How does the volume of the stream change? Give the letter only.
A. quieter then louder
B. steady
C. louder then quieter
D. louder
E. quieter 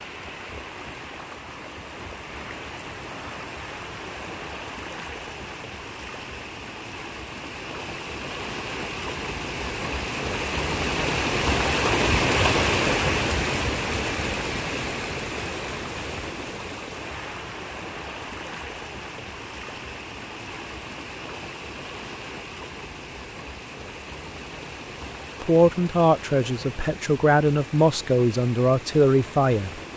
C.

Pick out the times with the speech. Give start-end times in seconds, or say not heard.
25.4-29.9.